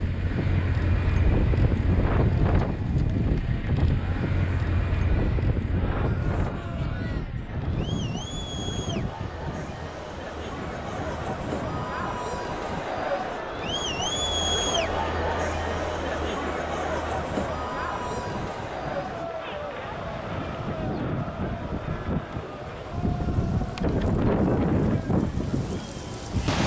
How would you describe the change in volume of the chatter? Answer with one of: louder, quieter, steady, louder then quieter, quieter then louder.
louder then quieter.